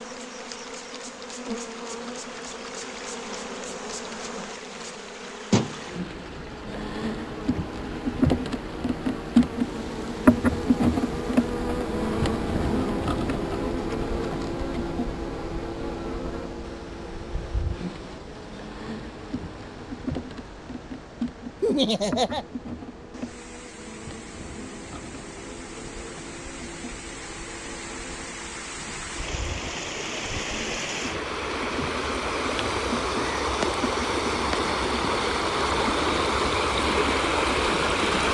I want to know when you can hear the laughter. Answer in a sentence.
You can hear the laughter from 21.6 to 22.4 s.